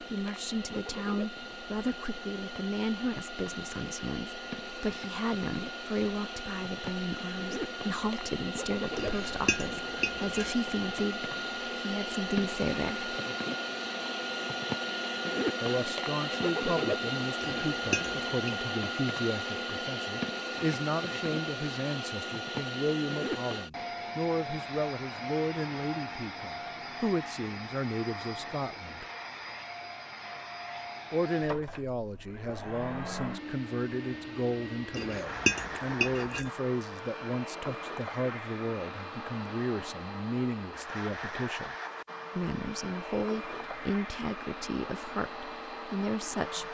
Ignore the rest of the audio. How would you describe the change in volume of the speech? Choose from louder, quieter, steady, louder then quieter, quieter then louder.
steady.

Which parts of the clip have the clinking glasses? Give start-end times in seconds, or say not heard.
8.9-10.6, 17.4-18.3, 34.9-36.5.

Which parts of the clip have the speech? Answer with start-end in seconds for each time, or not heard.
0.0-13.1, 15.6-29.1, 31.1-41.8, 42.4-46.7.